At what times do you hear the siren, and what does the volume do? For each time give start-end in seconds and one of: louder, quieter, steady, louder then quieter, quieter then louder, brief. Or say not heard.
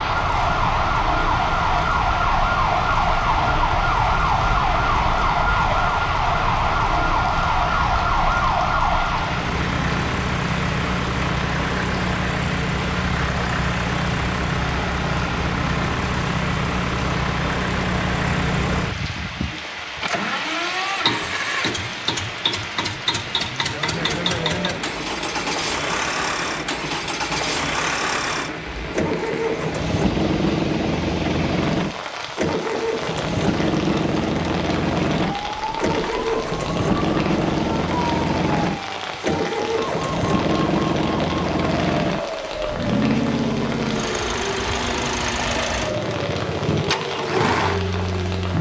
0.0-9.4 steady
35.2-48.5 steady.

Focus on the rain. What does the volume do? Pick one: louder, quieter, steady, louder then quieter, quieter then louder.
steady.